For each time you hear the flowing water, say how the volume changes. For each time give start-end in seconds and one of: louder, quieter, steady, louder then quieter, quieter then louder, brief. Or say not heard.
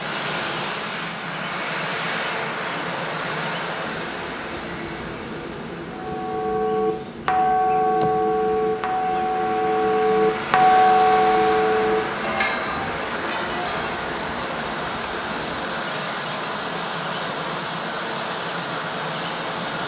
0.0-19.8 quieter then louder.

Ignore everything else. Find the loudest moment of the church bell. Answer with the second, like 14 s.
11 s.